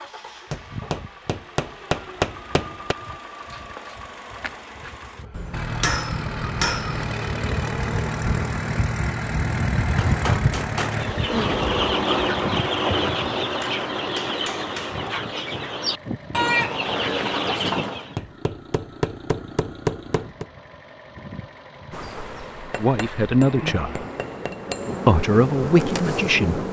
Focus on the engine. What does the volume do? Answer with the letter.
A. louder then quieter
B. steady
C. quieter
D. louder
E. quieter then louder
A.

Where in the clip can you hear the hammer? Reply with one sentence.
You can hear the hammer from 0.5 to 3.0 s, from 5.3 to 7.0 s, from 9.3 to 11.1 s, from 13.6 to 15.1 s, from 18.1 to 20.4 s and from 22.7 to 24.9 s.